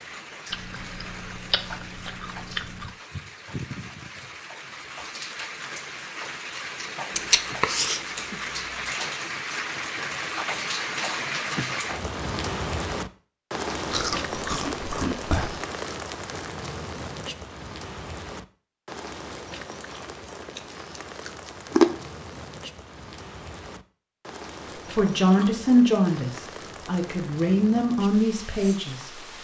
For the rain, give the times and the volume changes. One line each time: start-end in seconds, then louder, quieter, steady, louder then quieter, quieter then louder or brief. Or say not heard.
0.0-29.4 louder then quieter.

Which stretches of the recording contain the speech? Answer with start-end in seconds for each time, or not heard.
24.8-29.1.